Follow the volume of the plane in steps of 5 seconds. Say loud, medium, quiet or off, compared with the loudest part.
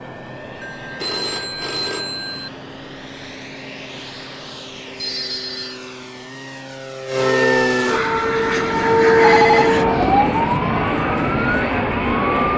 quiet, loud, loud.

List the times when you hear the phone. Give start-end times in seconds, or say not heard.
0.6-2.5, 4.8-5.8, 9.1-10.2.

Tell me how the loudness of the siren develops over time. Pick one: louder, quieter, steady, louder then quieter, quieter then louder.
louder then quieter.